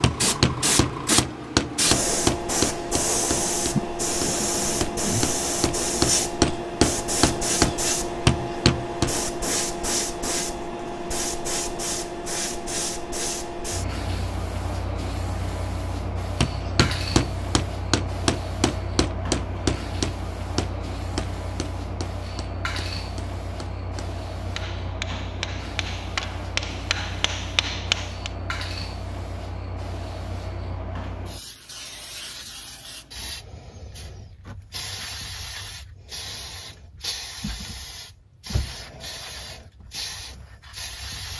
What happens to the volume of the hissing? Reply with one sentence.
The volume of the hissing goes down.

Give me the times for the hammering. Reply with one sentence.
The hammering can be heard from 0.0 to 9.2 s and from 16.4 to 28.3 s.